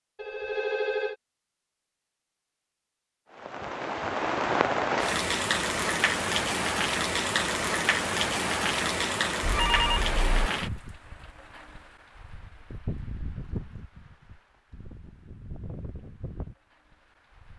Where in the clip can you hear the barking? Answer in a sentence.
You can't hear the barking here.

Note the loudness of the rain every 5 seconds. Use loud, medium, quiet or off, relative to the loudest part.
loud, loud, medium, quiet.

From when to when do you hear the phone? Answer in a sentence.
You can hear the phone from 0.1 to 1.1 s and from 9.4 to 10.5 s.